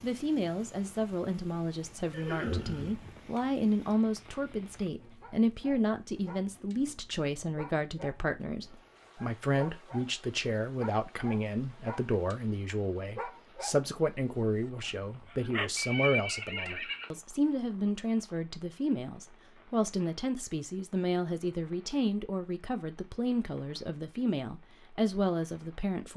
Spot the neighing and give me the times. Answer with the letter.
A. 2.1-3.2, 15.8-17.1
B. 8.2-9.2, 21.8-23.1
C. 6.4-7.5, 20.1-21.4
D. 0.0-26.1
A.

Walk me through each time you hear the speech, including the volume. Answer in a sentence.
The speech can be heard from 0.0 to 26.1 s, at a steady volume.